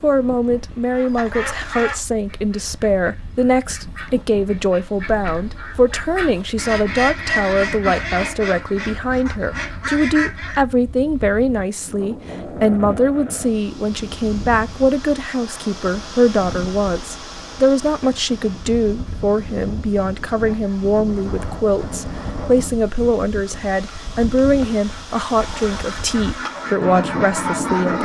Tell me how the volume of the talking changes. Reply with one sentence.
The volume of the talking stays about the same.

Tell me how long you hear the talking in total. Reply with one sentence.
The talking can be heard for 28 seconds in total.